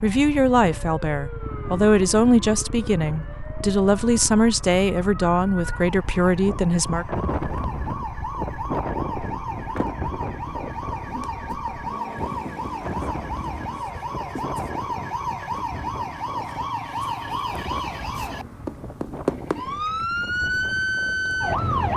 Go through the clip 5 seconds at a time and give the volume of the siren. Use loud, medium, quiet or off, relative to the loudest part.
quiet, medium, medium, medium, loud.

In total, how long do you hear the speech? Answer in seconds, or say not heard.
7 s.